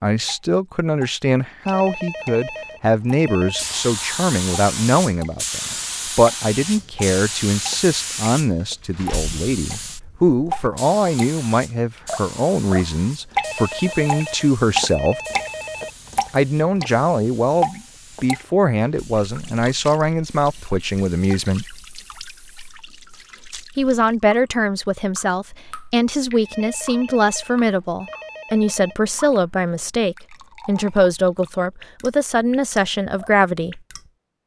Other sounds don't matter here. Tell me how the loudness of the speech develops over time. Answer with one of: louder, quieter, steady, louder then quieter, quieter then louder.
steady.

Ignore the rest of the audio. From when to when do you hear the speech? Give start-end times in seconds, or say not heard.
0.0-15.2, 16.3-21.7, 23.8-33.8.